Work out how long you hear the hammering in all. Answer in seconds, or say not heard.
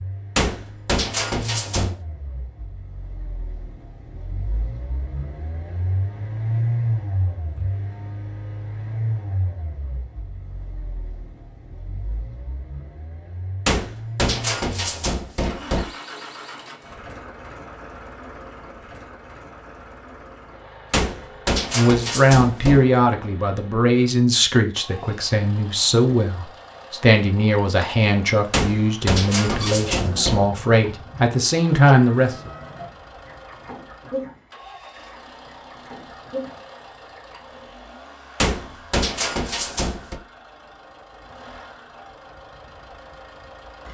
10 s.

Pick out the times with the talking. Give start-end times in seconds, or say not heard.
21.8-32.5.